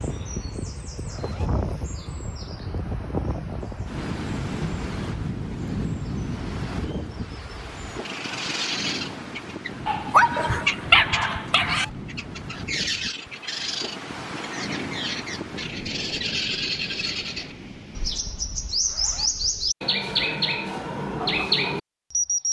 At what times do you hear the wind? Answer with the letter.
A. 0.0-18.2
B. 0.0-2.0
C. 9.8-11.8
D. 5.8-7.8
A.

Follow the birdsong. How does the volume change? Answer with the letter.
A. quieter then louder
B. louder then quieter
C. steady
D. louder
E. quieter
D.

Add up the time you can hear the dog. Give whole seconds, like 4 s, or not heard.
2 s.